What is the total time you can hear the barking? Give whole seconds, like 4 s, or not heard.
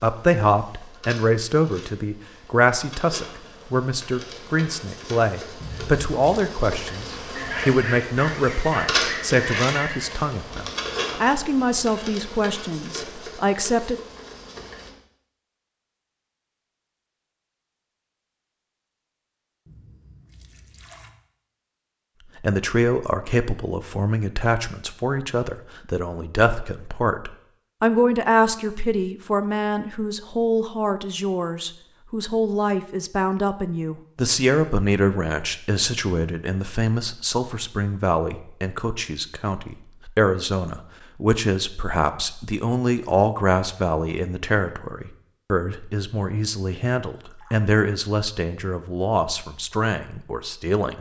3 s.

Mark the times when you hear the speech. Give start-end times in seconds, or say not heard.
0.0-13.9, 22.4-50.9.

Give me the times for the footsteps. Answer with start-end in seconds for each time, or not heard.
not heard.